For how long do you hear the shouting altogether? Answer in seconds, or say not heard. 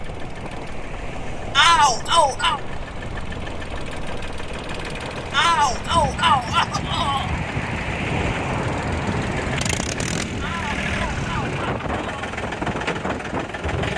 5 s.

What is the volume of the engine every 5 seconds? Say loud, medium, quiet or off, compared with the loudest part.
medium, loud, loud.